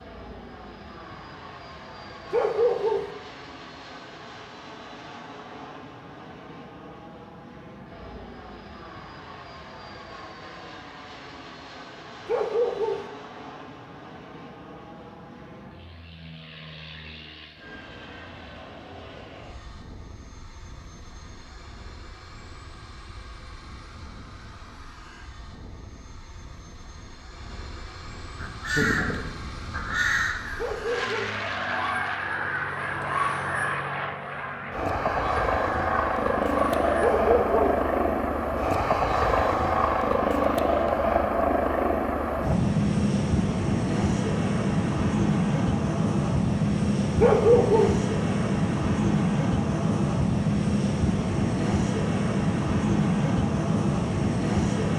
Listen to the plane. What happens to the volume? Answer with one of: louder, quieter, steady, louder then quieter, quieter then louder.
louder.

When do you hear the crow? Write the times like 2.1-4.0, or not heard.
28.4-37.1.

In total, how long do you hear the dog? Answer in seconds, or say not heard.
4 s.